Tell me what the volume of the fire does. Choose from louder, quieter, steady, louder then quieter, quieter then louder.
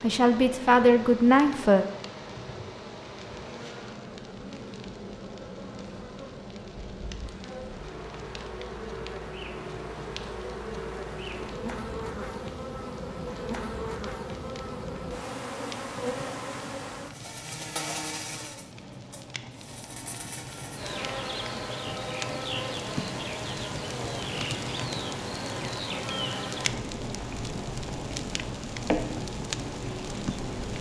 louder.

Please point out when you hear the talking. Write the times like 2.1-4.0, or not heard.
0.0-1.9.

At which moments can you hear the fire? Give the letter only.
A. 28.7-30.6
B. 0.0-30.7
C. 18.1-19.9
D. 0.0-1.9
B.